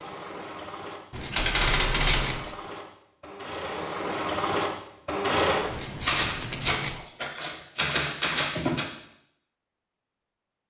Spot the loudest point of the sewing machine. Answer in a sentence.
The volume of the sewing machine peaks at 5 seconds.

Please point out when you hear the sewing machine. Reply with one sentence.
The sewing machine can be heard from 0.0 to 5.8 s.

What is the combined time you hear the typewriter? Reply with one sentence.
You can hear the typewriter for 4 seconds altogether.